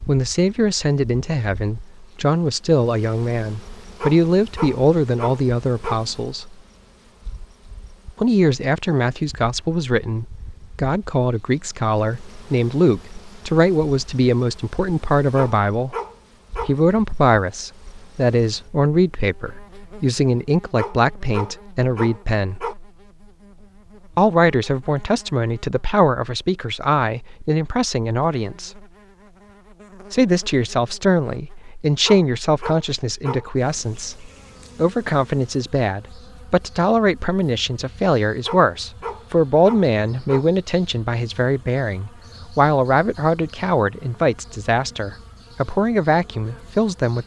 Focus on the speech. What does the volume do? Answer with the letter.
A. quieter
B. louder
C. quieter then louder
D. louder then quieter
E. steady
E.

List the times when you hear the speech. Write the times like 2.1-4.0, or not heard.
0.1-6.5, 8.2-15.9, 16.6-22.6, 24.1-28.7, 30.1-47.2.